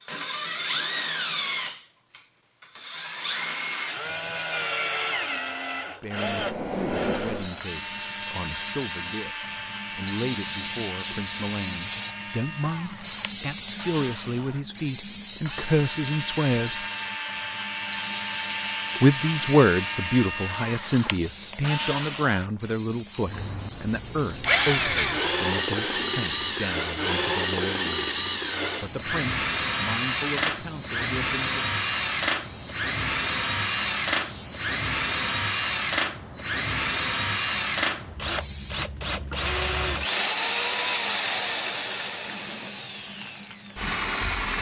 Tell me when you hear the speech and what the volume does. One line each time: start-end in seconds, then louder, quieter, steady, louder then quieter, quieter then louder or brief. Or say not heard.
6.0-16.8 louder
19.0-28.1 quieter
28.8-31.6 brief.